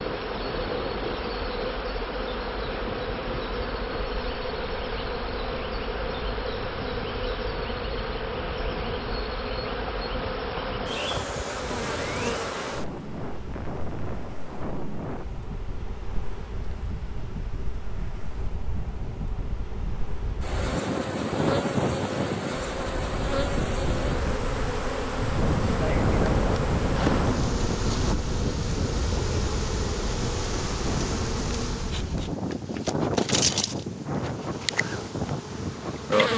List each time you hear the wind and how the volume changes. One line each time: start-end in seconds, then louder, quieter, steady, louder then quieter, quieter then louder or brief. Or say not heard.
0.0-36.3 louder.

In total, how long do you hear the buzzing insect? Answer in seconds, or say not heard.
36 s.